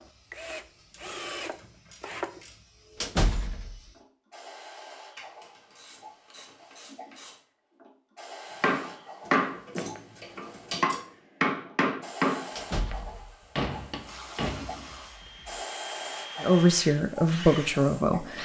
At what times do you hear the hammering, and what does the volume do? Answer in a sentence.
You can hear the hammering from 8.6 to 12.9 s, getting quieter then louder; and briefly from 13.6 to 15.3 s.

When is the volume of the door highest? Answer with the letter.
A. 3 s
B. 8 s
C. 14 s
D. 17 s
A.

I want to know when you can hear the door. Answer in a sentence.
The door can be heard from 3.0 to 3.8 s and from 12.6 to 13.3 s.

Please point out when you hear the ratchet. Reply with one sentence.
The ratchet can be heard from 0.9 to 2.6 s, from 5.2 to 7.4 s, from 9.2 to 11.1 s and from 14.0 to 15.7 s.